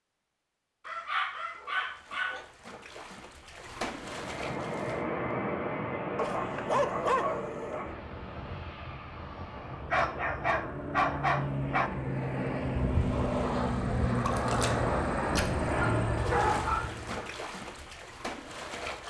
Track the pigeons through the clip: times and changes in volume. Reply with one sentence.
The pigeons can't be heard in this clip.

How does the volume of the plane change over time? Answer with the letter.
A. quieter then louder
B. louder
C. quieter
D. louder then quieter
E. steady
A.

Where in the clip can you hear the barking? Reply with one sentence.
You can hear the barking from 0.8 to 2.5 s, from 6.2 to 7.9 s, from 9.9 to 11.9 s and from 15.8 to 16.9 s.